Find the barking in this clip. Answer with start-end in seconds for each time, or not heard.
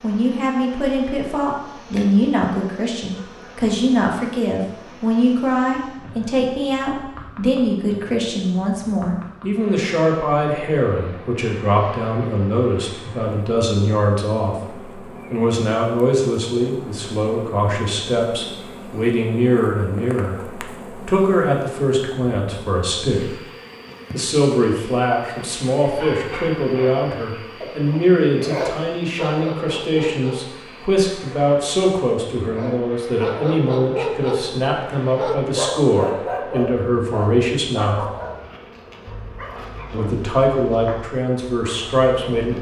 25.9-30.6, 32.5-42.5.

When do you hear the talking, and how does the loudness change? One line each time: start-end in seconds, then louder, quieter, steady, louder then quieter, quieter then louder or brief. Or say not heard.
0.0-23.3 steady
24.1-38.0 steady
39.9-42.5 brief.